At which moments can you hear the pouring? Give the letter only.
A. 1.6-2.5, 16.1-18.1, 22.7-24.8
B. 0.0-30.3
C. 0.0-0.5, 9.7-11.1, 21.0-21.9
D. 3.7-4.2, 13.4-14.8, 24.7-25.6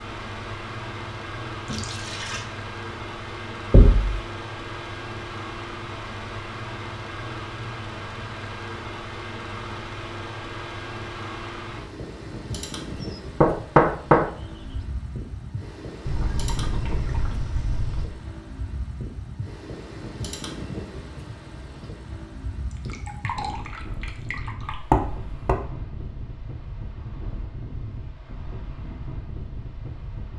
A.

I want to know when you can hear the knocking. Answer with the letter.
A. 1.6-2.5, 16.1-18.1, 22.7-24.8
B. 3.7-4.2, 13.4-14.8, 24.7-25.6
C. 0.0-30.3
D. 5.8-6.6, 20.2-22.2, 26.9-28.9
B.